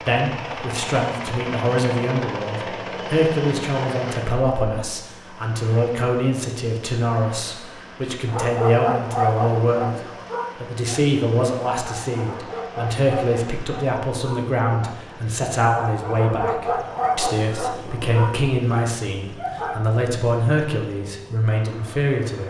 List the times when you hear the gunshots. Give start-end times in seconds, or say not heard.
not heard.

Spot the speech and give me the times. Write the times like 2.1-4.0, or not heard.
0.1-22.4.